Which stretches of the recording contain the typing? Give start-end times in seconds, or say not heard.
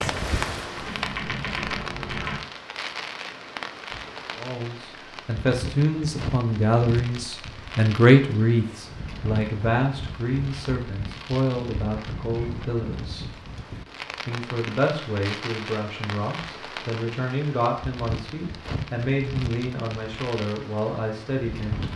0.0-2.4.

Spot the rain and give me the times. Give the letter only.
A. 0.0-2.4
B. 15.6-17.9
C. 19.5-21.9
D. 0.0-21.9
D.